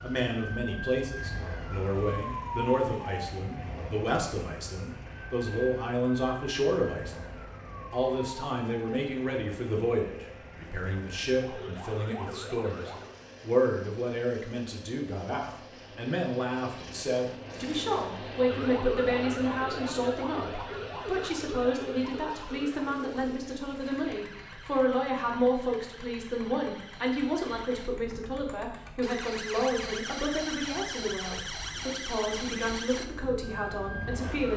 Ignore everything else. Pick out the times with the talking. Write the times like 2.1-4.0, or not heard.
0.0-34.5.